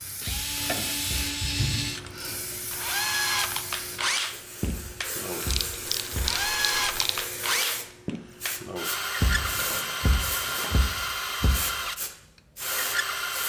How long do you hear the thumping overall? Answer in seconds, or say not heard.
5 s.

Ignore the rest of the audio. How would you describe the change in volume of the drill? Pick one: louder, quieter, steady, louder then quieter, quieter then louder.
steady.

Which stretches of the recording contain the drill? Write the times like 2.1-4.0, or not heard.
0.2-13.4.